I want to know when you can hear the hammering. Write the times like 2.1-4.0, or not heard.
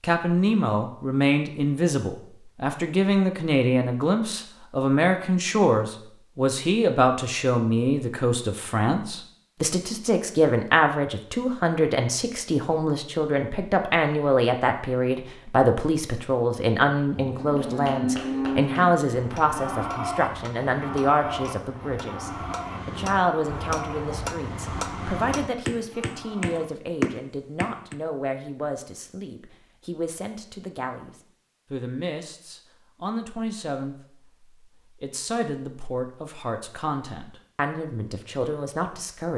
17.6-27.9.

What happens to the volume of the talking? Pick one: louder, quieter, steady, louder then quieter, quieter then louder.
quieter.